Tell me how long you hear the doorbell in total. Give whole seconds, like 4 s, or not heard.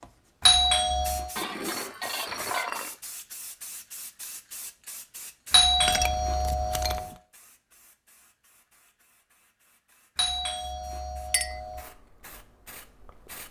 4 s.